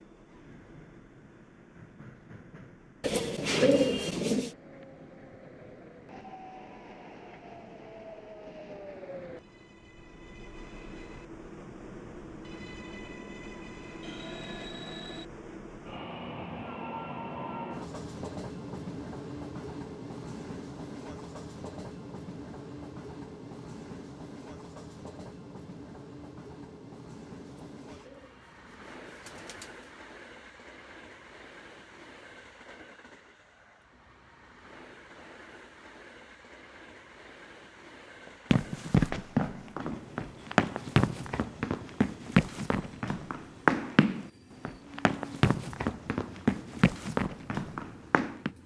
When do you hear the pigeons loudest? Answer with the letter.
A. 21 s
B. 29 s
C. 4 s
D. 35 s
C.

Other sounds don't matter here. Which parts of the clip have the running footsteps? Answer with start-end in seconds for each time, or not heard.
38.5-48.5.